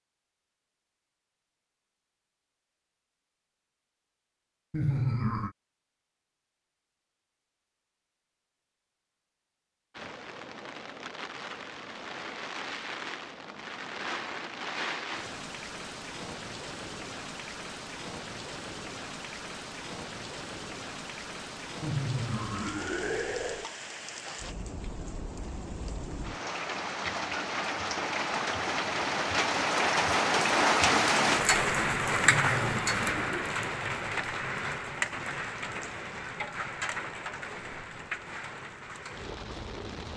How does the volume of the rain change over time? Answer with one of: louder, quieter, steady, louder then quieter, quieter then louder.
louder then quieter.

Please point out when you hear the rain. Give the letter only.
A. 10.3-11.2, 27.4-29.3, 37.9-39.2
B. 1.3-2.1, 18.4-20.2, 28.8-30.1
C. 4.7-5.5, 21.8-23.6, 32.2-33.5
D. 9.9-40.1
D.